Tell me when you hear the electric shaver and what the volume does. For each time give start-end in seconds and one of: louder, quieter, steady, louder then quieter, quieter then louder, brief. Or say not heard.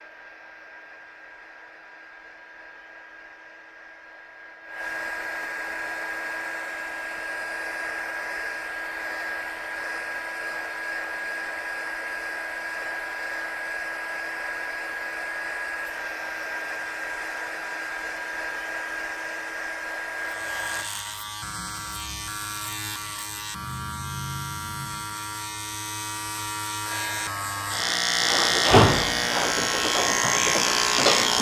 20.1-31.3 louder.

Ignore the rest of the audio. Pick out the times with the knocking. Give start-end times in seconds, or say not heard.
not heard.